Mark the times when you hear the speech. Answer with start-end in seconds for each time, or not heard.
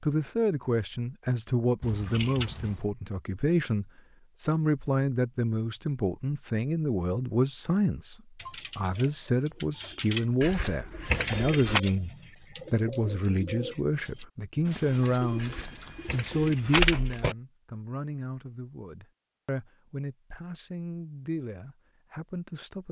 0.0-12.1, 12.7-22.8.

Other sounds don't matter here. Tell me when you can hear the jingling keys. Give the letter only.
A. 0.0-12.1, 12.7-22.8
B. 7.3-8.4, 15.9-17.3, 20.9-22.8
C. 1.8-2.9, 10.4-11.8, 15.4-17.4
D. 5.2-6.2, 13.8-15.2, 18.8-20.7
C.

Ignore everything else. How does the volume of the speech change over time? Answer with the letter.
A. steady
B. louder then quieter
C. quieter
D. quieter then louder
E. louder
C.